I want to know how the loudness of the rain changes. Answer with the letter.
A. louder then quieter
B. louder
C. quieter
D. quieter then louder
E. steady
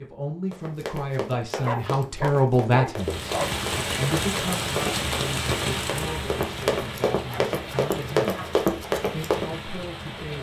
C.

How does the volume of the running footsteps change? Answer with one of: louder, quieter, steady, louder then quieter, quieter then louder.
louder.